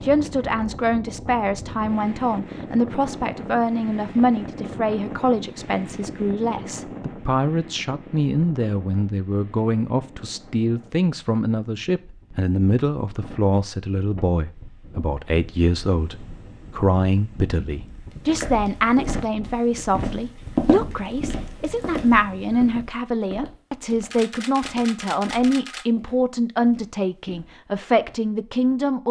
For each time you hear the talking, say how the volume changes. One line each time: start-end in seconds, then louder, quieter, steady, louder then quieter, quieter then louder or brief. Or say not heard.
0.0-29.0 steady.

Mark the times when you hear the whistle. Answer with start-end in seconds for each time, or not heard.
not heard.